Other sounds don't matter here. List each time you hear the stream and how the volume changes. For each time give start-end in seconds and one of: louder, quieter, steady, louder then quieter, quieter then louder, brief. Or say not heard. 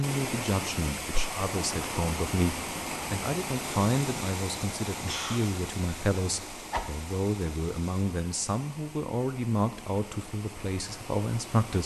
0.0-11.8 quieter.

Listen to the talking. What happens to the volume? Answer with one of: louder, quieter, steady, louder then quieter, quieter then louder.
steady.